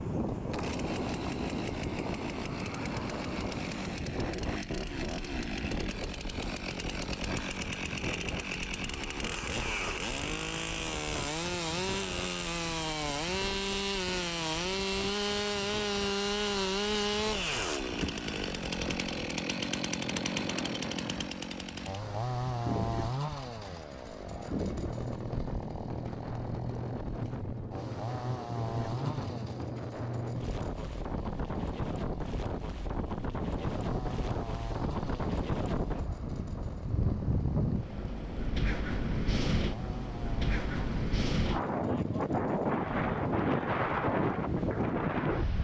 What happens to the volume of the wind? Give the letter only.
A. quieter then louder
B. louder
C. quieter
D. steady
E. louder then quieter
A.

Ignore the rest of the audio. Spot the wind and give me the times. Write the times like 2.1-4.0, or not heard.
0.0-45.6.